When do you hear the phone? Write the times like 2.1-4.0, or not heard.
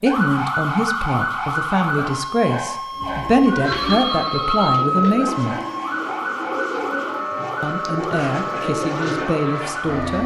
3.6-5.2.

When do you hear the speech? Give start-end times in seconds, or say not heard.
0.0-5.5, 7.6-10.2.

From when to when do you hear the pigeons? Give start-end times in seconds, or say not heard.
2.9-9.3.